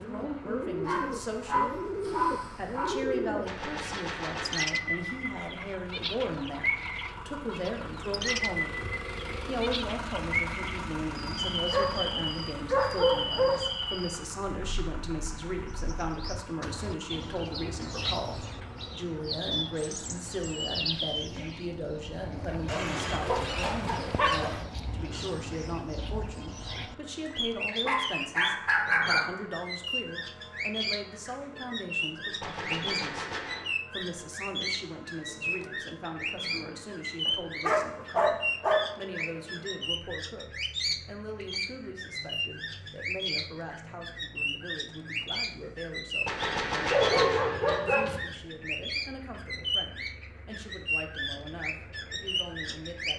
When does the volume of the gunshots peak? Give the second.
47 s.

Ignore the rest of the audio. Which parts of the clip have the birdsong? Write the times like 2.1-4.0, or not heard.
0.0-53.1.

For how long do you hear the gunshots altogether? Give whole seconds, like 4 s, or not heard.
4 s.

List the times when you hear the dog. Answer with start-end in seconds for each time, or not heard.
0.8-3.0, 11.7-13.7, 22.6-24.6, 27.8-29.4, 37.2-39.2, 46.9-48.2.